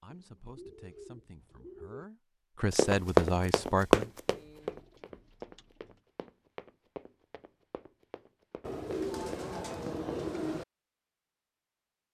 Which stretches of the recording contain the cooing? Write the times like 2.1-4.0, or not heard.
0.1-2.0, 4.2-6.0, 8.6-10.7.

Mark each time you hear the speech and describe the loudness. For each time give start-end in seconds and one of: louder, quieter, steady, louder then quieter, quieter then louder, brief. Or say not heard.
0.0-4.1 louder.